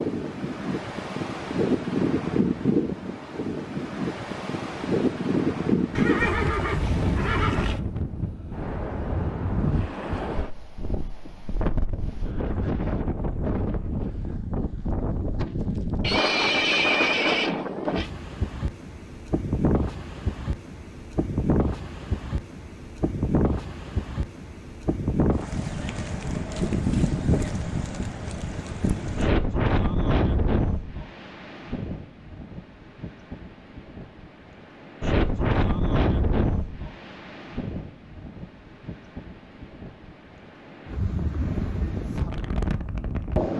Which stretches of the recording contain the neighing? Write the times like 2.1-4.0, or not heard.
6.0-7.8, 16.0-18.1, 41.4-42.0.